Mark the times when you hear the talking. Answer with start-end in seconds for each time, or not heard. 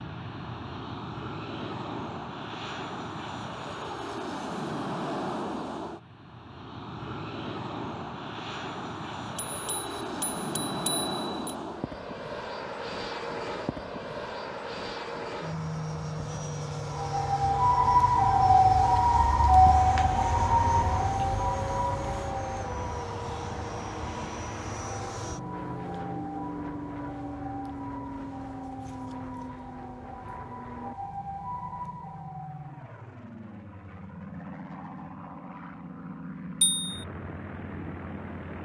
not heard.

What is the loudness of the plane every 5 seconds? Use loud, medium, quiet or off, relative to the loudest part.
loud, loud, loud, loud, loud, loud, medium, medium.